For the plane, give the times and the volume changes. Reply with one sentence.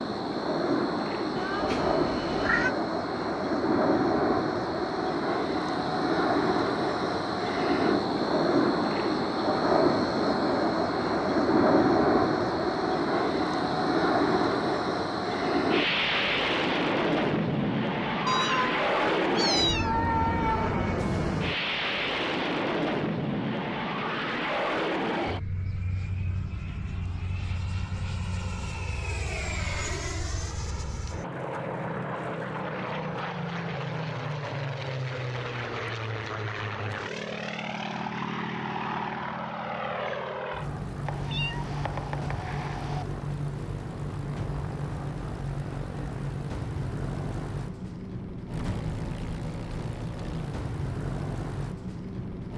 You can hear the plane from 0.0 to 52.5 s, getting quieter.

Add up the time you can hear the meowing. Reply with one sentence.
You can hear the meowing for 6 seconds altogether.